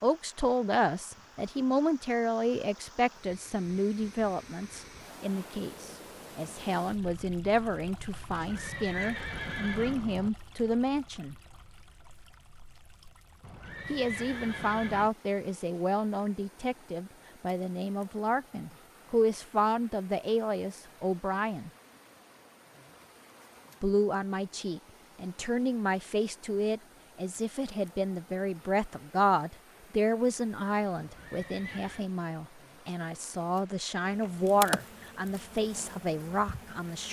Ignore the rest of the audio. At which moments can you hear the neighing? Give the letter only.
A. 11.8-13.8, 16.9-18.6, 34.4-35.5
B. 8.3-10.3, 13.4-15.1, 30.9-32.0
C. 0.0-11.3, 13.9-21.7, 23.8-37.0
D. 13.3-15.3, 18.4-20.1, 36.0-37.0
B.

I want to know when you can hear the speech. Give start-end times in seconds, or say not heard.
0.0-11.3, 13.9-21.7, 23.8-37.0.